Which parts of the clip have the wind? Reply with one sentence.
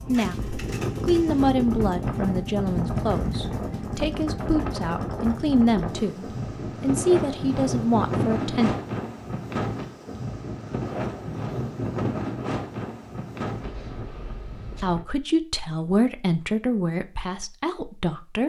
You can hear the wind from 0.0 to 15.1 s.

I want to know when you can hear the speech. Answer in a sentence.
You can hear the speech from 0.1 to 8.8 s and from 14.8 to 18.4 s.